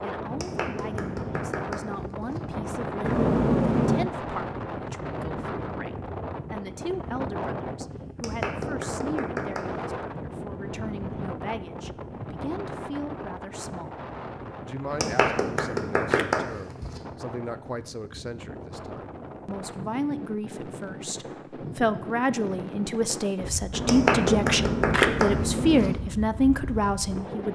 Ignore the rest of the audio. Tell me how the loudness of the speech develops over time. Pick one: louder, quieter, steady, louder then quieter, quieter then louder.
louder.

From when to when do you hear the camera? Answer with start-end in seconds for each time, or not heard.
3.0-4.1, 14.9-16.5, 23.7-25.9.